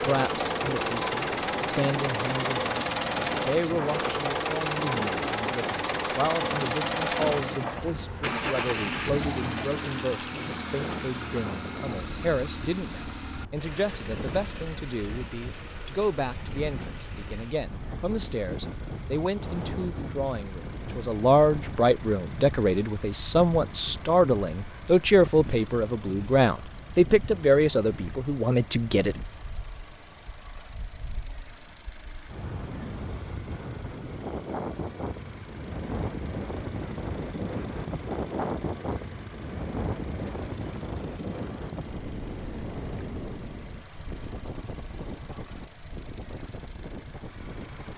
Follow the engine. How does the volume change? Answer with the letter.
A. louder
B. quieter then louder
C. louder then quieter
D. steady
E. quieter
E.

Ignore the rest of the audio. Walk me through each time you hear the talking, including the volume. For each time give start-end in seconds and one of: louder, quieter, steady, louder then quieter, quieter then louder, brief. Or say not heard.
0.0-29.1 louder.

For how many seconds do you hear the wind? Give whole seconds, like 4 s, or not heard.
48 s.